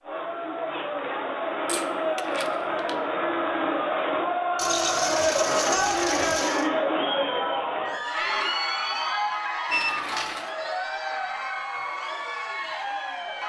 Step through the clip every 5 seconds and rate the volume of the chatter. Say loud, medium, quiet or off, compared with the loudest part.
loud, loud, medium.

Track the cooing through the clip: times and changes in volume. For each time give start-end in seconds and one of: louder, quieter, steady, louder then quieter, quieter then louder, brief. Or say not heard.
not heard.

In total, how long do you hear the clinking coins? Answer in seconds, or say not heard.
4 s.